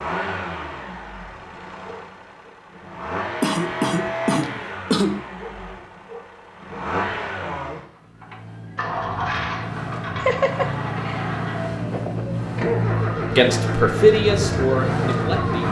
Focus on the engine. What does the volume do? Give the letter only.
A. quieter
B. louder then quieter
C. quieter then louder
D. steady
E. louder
E.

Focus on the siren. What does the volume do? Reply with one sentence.
The loudness of the siren goes up.